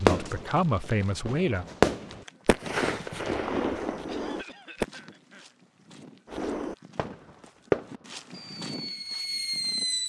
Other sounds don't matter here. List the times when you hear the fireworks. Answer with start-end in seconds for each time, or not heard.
0.0-4.8, 6.3-10.0.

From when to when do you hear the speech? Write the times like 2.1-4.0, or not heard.
0.0-1.6.